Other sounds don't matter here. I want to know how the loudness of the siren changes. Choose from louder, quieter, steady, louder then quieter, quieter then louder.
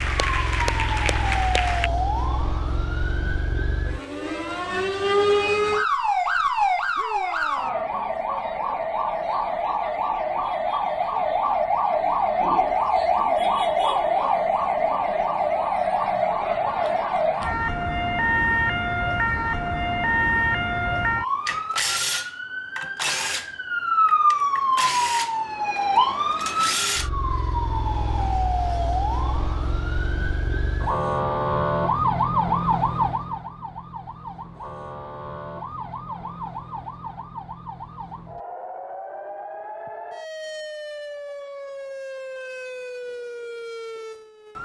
quieter.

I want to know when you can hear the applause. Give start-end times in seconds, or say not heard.
0.0-1.9.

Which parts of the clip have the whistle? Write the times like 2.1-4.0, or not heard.
not heard.